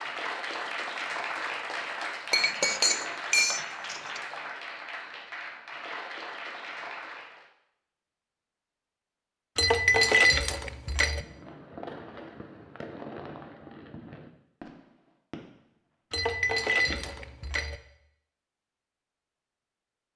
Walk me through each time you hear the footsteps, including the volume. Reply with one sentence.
You can't hear the footsteps here.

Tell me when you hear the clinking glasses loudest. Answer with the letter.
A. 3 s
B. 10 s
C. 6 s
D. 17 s
B.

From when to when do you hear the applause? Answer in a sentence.
You can hear the applause from 0.0 to 7.5 s.